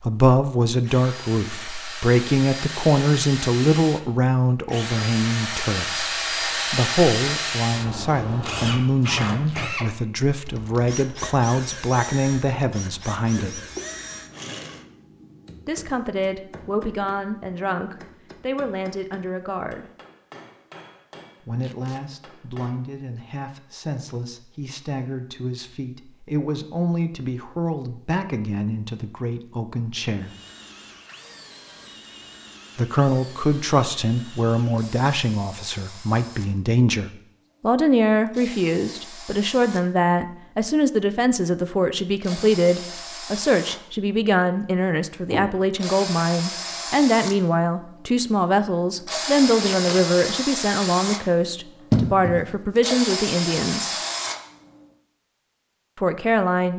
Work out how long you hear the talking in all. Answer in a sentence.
You can hear the talking for 49 seconds altogether.